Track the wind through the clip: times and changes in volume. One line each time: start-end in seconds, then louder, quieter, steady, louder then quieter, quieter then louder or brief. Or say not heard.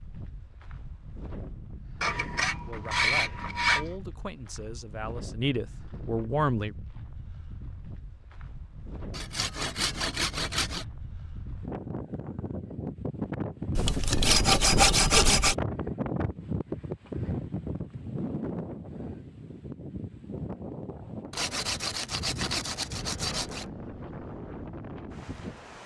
0.0-25.8 louder then quieter.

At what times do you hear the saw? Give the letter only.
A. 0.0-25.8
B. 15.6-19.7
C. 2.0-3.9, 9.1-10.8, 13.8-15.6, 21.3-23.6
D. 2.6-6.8
C.